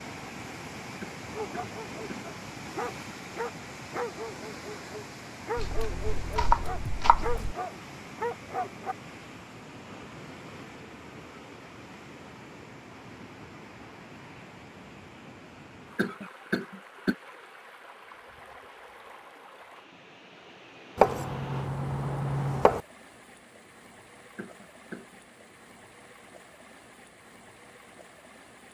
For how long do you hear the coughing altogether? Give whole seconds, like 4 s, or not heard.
3 s.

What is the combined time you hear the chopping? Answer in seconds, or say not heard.
4 s.